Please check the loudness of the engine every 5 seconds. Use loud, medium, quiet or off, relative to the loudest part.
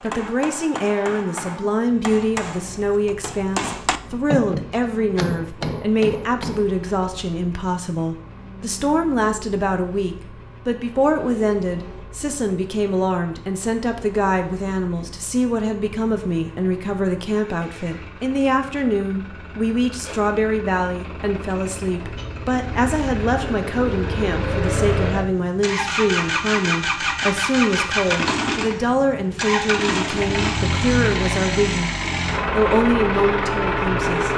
quiet, quiet, quiet, quiet, medium, loud, loud.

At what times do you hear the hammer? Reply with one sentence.
The hammer can be heard from 0.0 to 6.7 s.